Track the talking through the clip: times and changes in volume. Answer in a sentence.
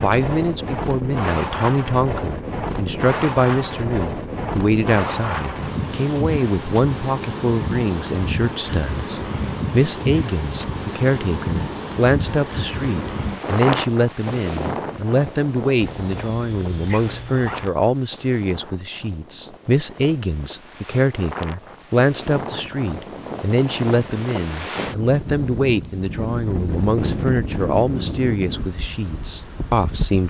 The talking can be heard from 0.0 to 30.2 s, at a steady volume.